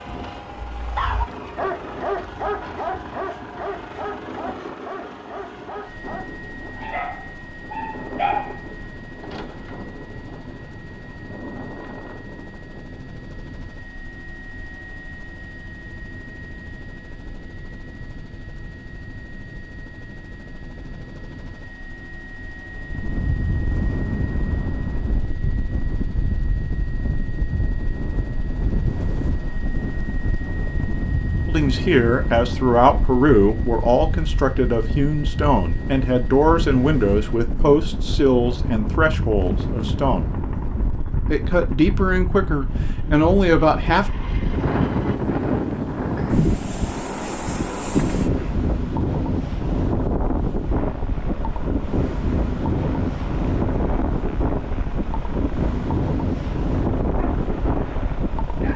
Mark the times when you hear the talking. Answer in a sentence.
You can hear the talking from 31.4 to 40.3 s and from 41.3 to 44.1 s.